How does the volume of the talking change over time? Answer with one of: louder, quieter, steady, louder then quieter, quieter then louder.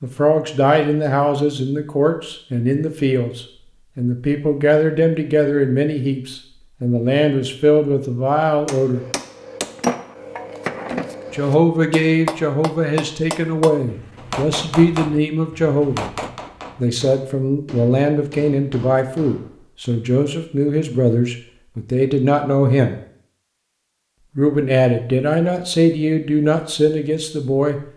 steady.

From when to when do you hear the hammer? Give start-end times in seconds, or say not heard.
8.7-19.6.